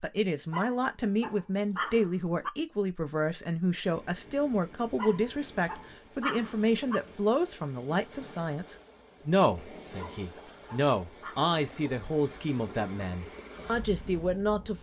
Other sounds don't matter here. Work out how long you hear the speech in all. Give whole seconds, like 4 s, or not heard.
15 s.